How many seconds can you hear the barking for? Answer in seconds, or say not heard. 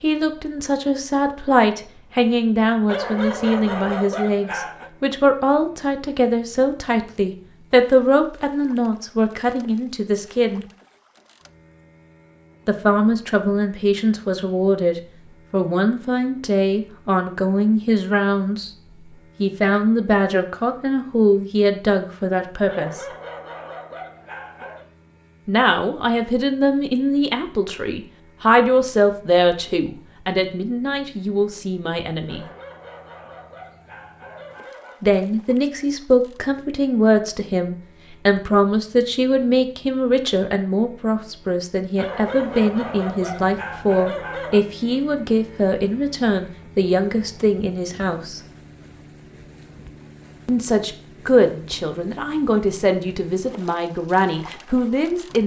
10 s.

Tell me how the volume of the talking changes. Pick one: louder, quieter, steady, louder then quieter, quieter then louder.
steady.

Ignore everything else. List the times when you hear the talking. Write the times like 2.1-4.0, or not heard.
0.0-10.7, 12.7-18.7, 19.4-23.1, 25.4-32.5, 35.0-48.4, 50.5-55.4.